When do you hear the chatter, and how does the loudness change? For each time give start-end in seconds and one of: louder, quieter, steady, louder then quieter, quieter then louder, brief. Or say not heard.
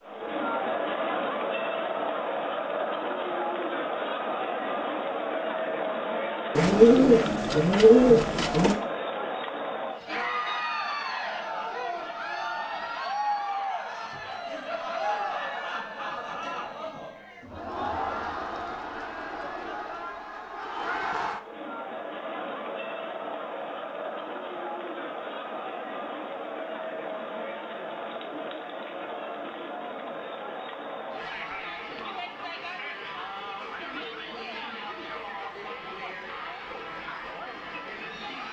0.0-38.4 quieter.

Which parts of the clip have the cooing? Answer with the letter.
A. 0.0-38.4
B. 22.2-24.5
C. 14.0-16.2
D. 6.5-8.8
D.